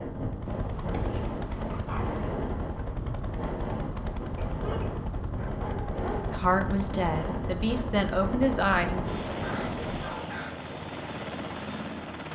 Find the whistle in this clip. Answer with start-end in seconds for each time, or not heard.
not heard.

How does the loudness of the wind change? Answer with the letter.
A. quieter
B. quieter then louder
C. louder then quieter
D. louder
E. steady
E.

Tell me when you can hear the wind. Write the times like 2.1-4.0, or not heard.
0.0-10.1.